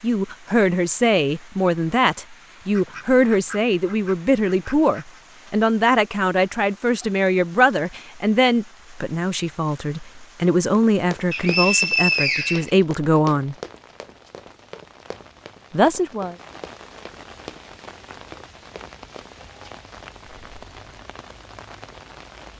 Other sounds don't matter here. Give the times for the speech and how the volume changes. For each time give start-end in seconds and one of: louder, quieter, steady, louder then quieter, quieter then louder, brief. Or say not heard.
0.0-13.6 steady
15.7-16.4 brief.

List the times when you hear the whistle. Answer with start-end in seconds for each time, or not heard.
11.3-12.8.